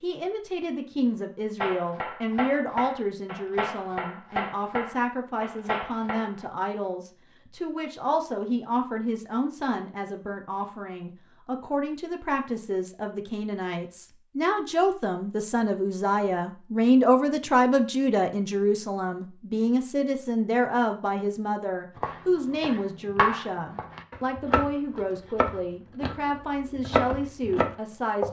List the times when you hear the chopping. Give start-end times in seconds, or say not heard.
1.6-6.5, 21.9-28.2.